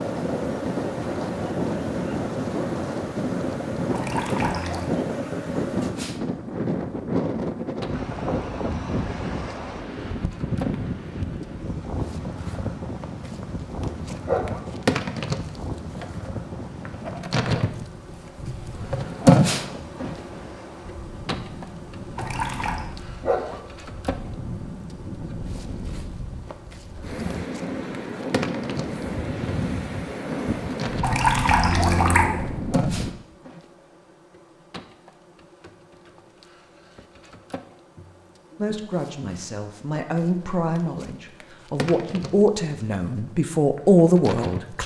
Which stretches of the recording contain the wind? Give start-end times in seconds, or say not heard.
0.0-33.1.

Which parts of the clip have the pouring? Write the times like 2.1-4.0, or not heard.
3.9-4.9, 22.1-22.9, 31.0-32.3.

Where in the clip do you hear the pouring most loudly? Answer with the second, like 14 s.
31 s.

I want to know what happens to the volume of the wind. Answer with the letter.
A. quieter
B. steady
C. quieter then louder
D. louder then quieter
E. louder
C.